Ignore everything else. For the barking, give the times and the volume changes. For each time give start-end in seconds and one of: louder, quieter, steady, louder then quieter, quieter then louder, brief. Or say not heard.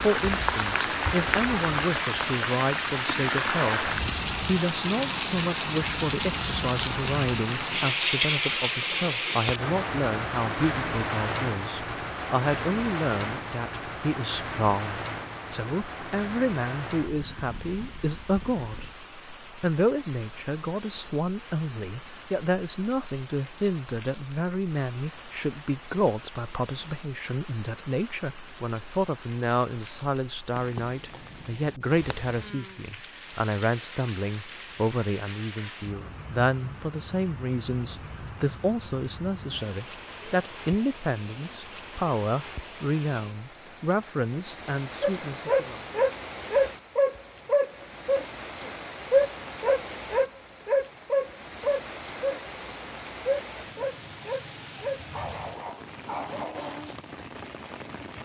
45.0-57.0 quieter.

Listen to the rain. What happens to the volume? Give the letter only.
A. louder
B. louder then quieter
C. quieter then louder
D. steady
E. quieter
E.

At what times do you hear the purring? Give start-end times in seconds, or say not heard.
not heard.